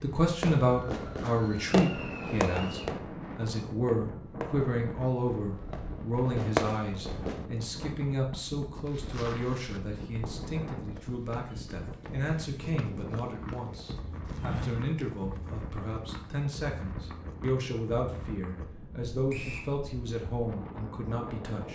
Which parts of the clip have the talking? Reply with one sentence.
The talking can be heard from 0.0 to 21.6 s.